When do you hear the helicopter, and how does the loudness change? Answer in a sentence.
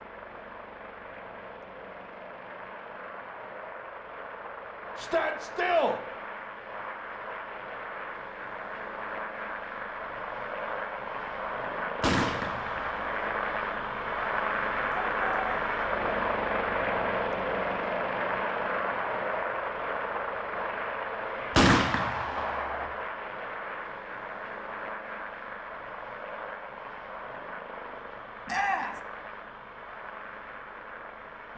The helicopter can be heard from 0.0 to 31.5 s, getting louder then quieter.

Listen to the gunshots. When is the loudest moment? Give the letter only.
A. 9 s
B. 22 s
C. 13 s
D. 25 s
B.